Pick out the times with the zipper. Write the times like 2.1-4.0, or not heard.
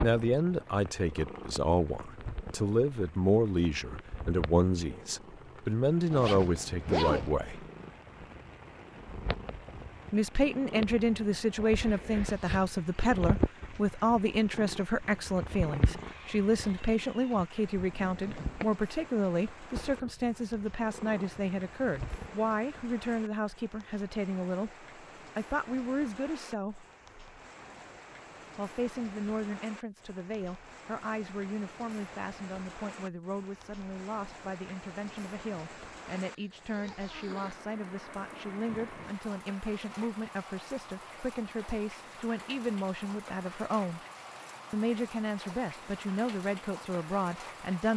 6.1-7.3, 17.8-18.6, 36.1-37.6.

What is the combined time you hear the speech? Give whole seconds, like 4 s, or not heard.
43 s.